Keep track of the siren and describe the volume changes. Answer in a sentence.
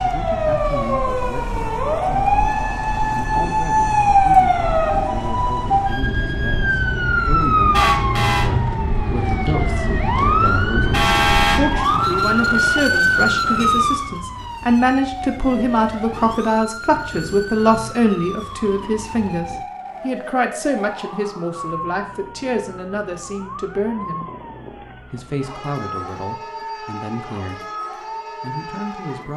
The loudness of the siren goes down.